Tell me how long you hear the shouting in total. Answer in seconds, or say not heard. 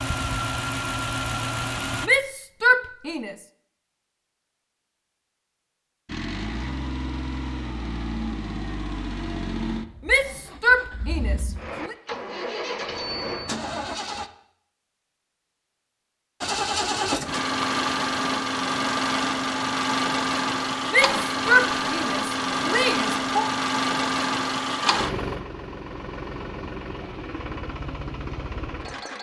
6 s.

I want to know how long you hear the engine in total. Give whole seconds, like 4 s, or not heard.
23 s.